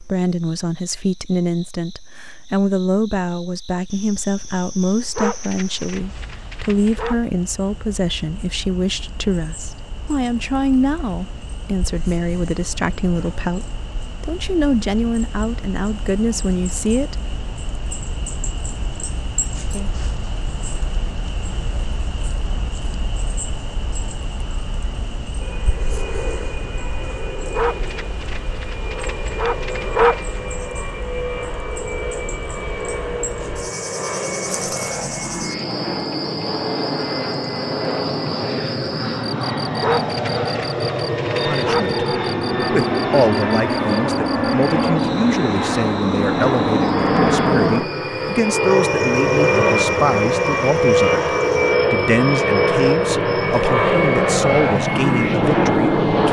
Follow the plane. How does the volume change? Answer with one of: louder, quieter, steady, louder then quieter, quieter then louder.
louder.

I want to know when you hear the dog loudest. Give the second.
30 s.